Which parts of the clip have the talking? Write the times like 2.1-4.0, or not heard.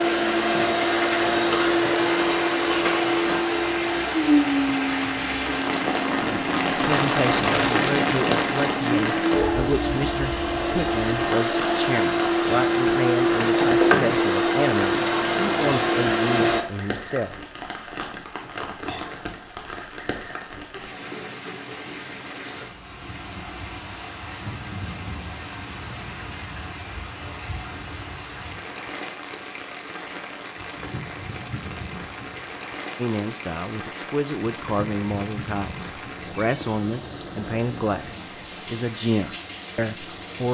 6.2-17.4, 33.0-40.4.